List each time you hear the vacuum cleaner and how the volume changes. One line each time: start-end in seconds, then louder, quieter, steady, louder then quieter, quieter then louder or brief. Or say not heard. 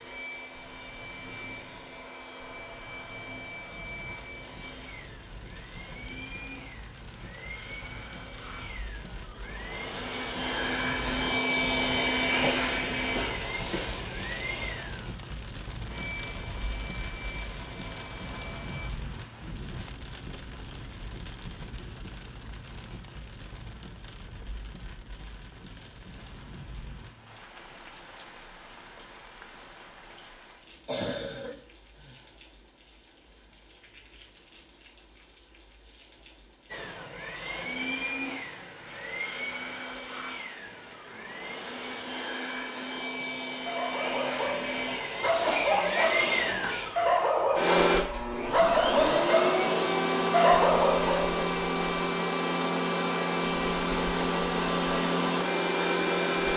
0.0-18.9 louder then quieter
36.7-56.5 louder.